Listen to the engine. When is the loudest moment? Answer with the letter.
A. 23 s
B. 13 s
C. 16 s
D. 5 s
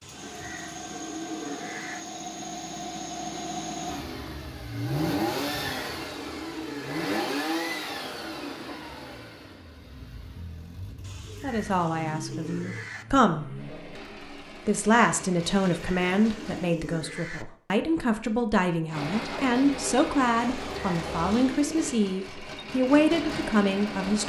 D.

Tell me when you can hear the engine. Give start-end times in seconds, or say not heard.
0.0-16.8, 18.9-24.2.